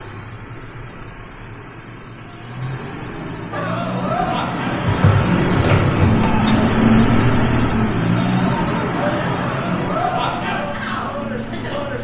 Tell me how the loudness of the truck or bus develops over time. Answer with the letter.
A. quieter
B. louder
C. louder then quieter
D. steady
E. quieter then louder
C.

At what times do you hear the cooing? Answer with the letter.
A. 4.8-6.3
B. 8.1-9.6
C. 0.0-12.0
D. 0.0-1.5
A.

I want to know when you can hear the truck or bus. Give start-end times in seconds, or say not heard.
0.0-12.0.